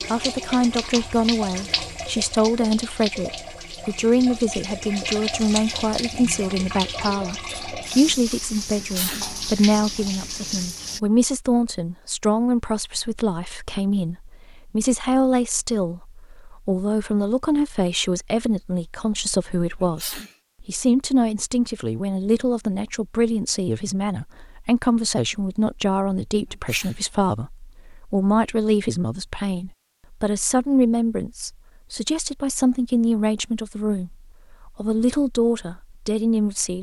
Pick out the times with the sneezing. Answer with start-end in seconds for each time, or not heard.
8.8-9.3, 19.8-20.4, 26.4-27.1.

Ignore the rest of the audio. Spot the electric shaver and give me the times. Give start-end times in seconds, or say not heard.
not heard.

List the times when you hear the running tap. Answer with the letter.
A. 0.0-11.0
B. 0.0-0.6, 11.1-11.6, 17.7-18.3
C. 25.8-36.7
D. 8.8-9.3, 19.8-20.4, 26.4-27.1
A.